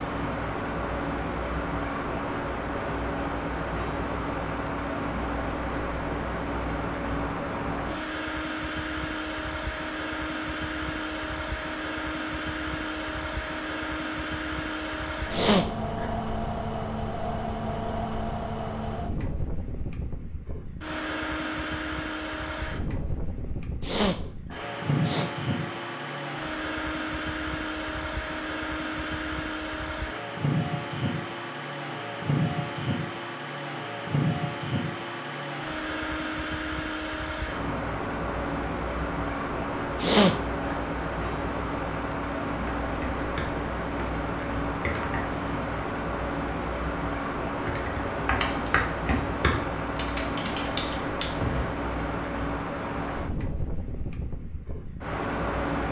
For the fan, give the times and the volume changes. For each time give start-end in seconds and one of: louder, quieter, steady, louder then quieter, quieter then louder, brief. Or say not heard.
0.0-55.8 steady.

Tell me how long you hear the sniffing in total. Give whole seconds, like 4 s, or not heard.
3 s.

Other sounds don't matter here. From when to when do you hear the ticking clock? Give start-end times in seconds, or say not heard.
not heard.